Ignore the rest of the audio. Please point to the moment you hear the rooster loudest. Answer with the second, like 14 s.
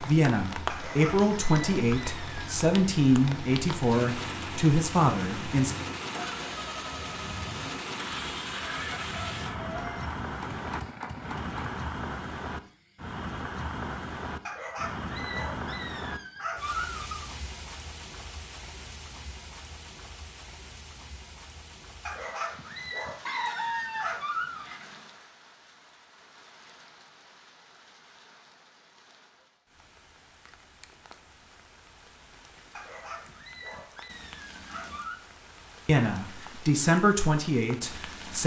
24 s.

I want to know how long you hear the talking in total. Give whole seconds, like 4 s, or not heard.
8 s.